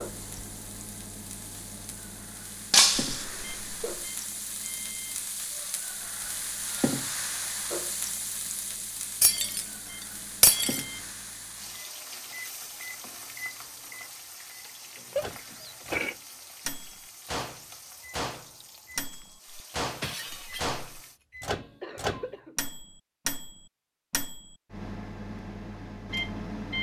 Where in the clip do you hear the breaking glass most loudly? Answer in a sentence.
The volume of the breaking glass peaks at 3 seconds.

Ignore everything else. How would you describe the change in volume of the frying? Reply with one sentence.
The volume of the frying goes up, then down.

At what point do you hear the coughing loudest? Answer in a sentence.
The loudest moment of the coughing is at 16 seconds.